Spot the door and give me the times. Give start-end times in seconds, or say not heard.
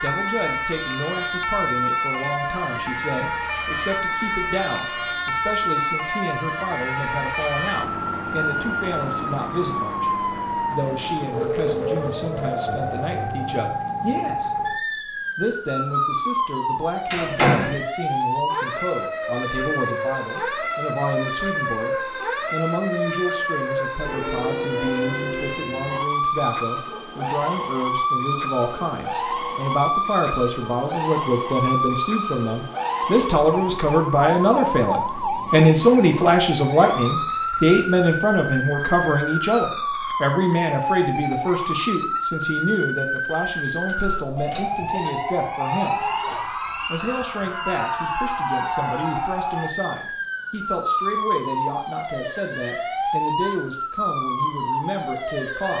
17.1-17.8, 43.9-44.7.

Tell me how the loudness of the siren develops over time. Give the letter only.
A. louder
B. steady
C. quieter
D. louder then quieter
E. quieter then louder
B.